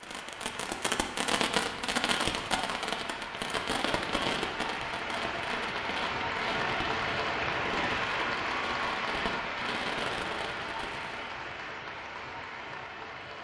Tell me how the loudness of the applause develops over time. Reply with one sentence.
The volume of the applause goes up, then down.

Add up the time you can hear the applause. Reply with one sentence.
The applause can be heard for 13 seconds in total.